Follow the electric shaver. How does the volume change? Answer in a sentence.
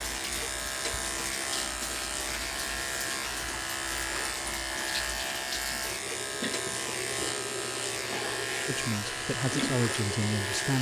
The volume of the electric shaver stays about the same.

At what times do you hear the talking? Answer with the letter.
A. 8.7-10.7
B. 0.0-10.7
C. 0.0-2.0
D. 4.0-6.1
A.